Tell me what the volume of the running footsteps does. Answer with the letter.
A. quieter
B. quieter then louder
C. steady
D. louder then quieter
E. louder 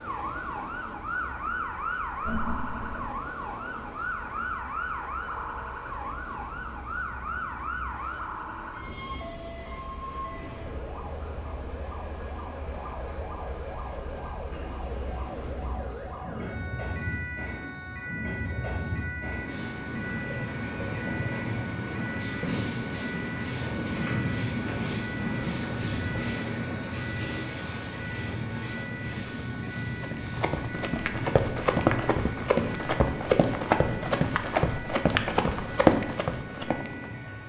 E.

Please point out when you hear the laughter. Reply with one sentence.
The laughter can be heard from 2.2 to 3.1 s.